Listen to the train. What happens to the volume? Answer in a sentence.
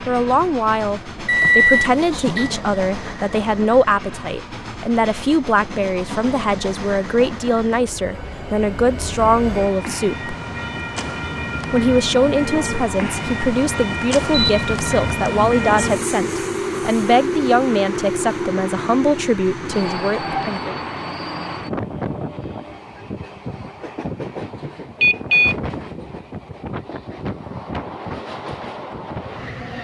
The volume of the train goes up, then down.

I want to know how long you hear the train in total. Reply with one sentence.
You can hear the train for 30 seconds altogether.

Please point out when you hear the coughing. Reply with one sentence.
The coughing can't be heard in this clip.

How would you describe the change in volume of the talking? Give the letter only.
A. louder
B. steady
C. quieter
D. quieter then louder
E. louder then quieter
B.